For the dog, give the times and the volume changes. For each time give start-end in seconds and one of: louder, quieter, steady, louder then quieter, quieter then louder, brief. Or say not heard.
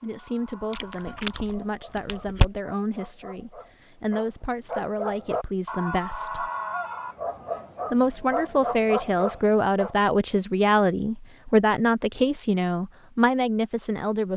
0.0-9.9 louder.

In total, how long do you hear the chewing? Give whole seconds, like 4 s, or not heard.
2 s.